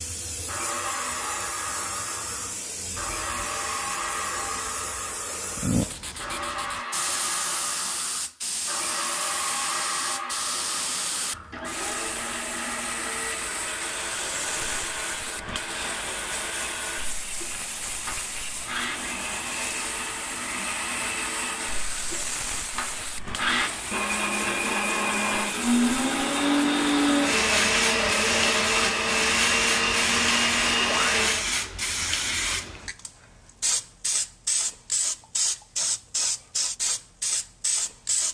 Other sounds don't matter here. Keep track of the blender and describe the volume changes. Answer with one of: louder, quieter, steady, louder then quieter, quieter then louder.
louder.